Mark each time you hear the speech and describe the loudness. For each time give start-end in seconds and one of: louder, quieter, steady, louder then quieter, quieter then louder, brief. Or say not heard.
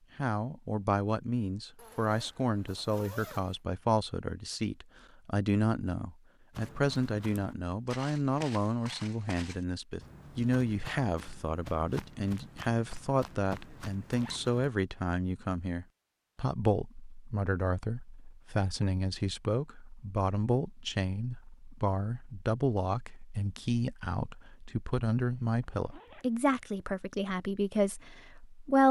0.1-28.8 steady.